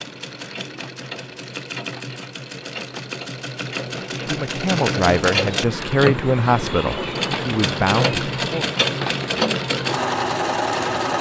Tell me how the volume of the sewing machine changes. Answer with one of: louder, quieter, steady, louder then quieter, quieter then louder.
louder.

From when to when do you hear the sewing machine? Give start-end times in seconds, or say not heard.
0.0-11.1.